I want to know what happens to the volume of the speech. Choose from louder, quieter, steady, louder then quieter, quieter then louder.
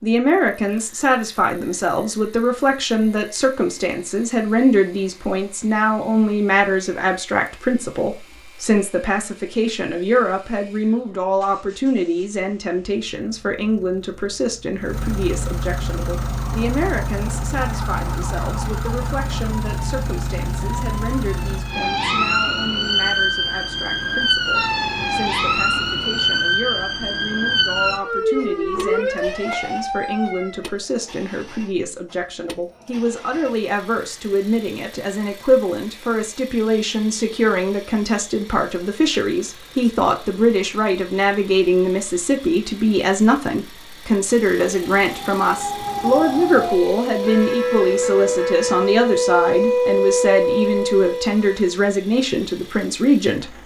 quieter then louder.